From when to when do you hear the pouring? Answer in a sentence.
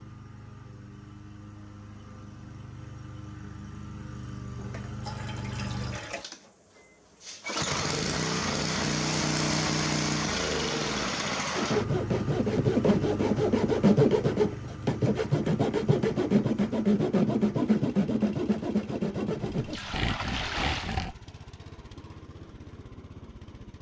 The pouring can be heard from 4.5 to 6.3 s and from 19.6 to 21.1 s.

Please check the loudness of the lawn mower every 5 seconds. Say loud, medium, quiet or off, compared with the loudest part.
quiet, loud, loud, quiet, quiet.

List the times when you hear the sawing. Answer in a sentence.
The sawing can be heard from 11.6 to 21.1 s.